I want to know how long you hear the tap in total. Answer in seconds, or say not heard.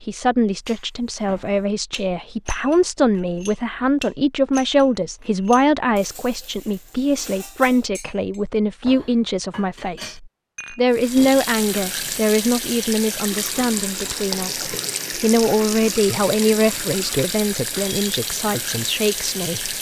9 s.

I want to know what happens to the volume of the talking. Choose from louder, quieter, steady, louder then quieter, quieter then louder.
steady.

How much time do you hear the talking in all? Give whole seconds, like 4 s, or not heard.
20 s.